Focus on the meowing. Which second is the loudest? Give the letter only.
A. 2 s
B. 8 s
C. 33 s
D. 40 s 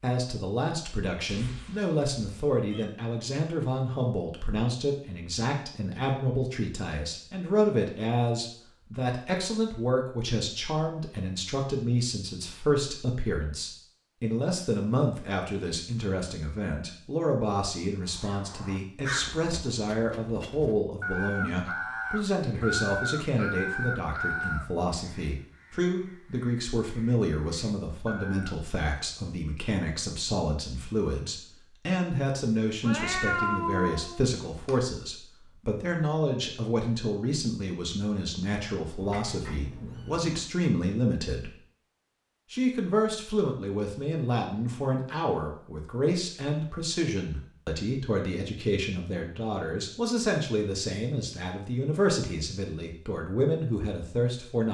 C.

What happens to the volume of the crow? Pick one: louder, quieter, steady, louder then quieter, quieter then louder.
louder then quieter.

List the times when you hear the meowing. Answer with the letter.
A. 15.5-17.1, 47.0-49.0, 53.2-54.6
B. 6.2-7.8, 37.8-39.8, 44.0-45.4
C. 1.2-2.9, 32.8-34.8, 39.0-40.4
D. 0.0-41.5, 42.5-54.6
C.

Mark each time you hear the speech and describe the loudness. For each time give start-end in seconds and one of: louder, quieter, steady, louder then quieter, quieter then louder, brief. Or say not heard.
0.0-41.5 steady
42.5-54.6 steady.